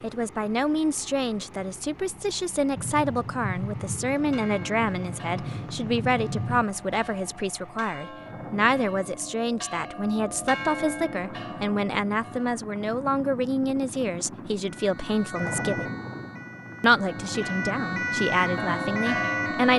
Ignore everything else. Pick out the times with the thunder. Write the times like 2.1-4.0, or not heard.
2.8-6.7.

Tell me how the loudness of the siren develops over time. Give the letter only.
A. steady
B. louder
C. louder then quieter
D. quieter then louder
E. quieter
D.